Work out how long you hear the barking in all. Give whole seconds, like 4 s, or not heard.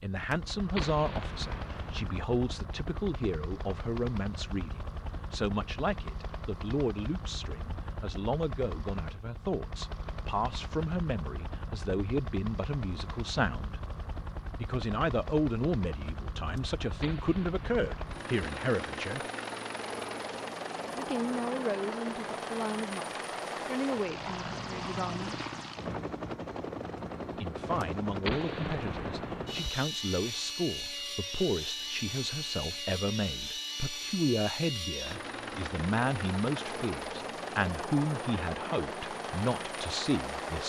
not heard.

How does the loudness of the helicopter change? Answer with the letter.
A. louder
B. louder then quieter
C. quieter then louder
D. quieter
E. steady
A.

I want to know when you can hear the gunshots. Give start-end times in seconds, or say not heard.
0.3-2.2, 16.6-18.4, 27.8-29.7.